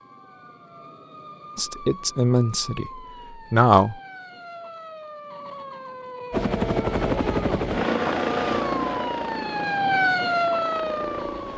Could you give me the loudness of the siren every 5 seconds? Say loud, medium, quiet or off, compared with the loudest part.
quiet, medium, loud.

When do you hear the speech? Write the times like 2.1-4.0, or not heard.
1.6-2.9, 3.5-4.0.